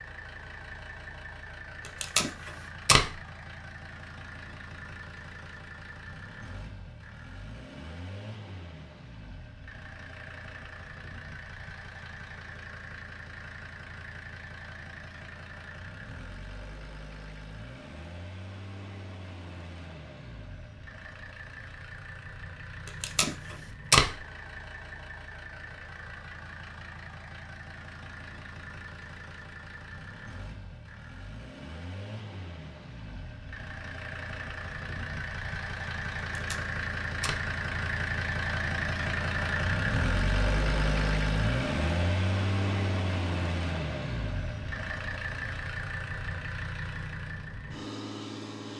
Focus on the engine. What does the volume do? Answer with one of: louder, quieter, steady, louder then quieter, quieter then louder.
louder.